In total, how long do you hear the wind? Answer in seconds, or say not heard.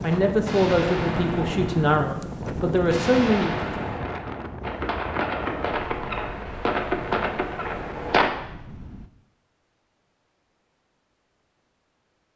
9 s.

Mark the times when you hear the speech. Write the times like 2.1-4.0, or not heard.
0.0-3.5.